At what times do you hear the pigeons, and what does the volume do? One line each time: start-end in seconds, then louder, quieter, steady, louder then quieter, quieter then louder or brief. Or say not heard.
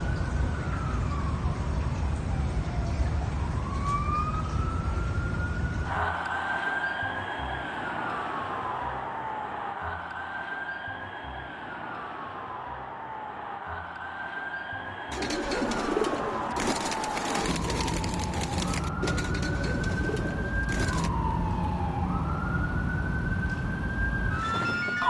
15.1-21.1 quieter.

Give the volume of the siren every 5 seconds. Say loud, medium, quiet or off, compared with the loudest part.
loud, loud, medium, loud, loud.